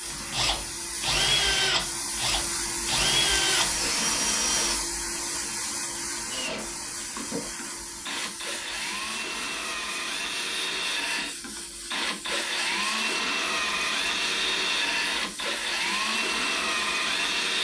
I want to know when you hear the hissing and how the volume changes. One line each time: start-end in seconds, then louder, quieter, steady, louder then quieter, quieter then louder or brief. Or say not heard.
0.0-17.6 quieter.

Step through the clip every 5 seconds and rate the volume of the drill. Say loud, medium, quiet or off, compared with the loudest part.
loud, medium, loud, loud.